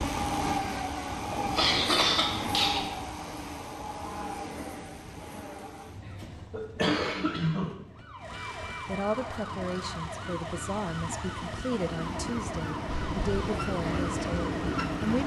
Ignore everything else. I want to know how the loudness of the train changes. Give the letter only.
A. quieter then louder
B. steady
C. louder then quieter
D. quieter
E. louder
A.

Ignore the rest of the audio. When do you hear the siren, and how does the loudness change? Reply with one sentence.
The siren can be heard from 7.9 to 15.2 s, at a steady volume.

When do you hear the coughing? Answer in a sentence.
The coughing can be heard from 1.3 to 2.9 s, from 6.0 to 7.8 s and from 12.8 to 13.3 s.